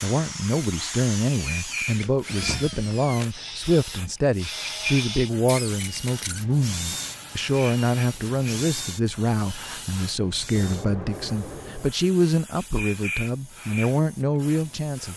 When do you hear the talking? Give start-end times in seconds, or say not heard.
0.0-15.1.